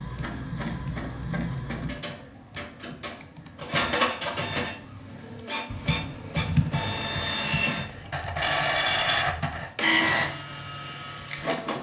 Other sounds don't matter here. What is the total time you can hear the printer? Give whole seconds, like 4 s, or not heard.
12 s.